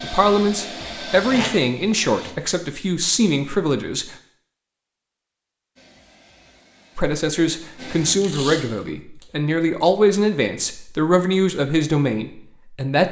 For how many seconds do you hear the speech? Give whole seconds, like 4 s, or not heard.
10 s.